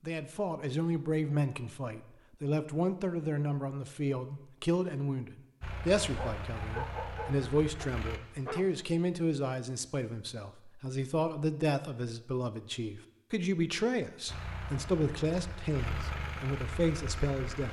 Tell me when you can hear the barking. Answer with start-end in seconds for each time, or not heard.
6.0-8.8.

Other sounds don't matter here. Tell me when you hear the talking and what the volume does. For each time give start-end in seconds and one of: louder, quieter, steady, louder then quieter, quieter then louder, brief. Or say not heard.
0.0-17.6 steady.